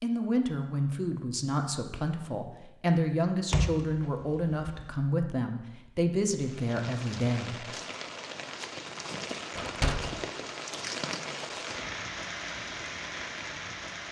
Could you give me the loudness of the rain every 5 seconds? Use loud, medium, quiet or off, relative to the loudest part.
off, loud, loud.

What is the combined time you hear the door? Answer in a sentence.
You can hear the door for 2 seconds altogether.